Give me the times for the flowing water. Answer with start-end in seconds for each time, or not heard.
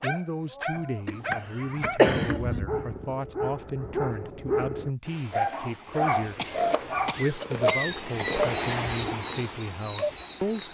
5.0-10.6.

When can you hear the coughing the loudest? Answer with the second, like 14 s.
2 s.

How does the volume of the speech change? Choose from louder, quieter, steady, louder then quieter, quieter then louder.
steady.